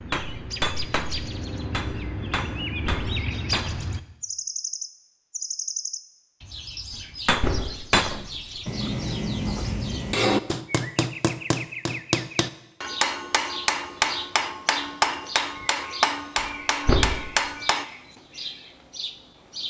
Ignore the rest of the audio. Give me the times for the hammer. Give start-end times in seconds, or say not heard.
0.0-3.9, 7.2-17.9.